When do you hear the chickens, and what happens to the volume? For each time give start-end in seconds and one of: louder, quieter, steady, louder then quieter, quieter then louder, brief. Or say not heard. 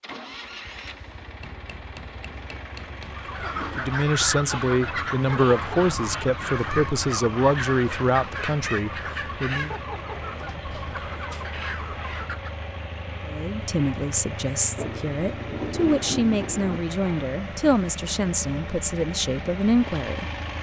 3.0-12.6 quieter.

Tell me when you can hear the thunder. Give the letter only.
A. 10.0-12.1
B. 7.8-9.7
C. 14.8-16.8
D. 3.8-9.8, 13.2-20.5
C.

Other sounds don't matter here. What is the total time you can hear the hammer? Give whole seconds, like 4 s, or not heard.
2 s.